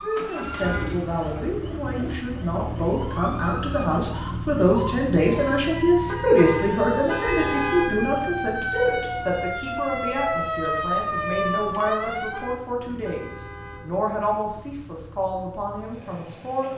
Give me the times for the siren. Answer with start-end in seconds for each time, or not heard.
0.0-12.6.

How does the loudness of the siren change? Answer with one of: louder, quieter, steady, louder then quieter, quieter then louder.
louder.